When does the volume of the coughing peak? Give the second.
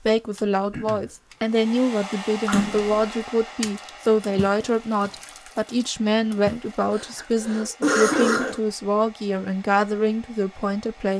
8 s.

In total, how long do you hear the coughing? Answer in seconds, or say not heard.
2 s.